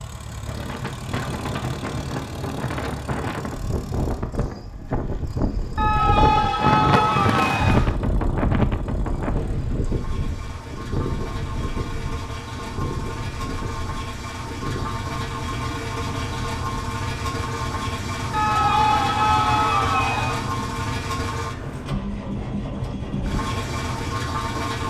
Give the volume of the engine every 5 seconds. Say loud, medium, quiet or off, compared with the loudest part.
medium, quiet, medium, loud, loud.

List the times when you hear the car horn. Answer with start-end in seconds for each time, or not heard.
7.0-8.0.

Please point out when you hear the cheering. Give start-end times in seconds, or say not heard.
5.8-7.8, 18.3-20.4.